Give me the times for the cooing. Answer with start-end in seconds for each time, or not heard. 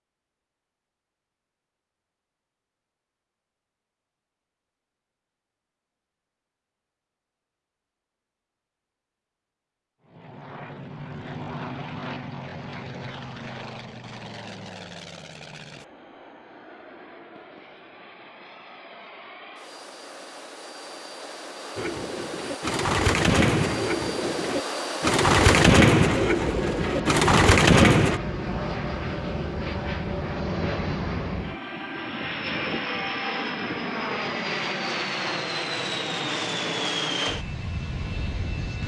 21.8-28.2.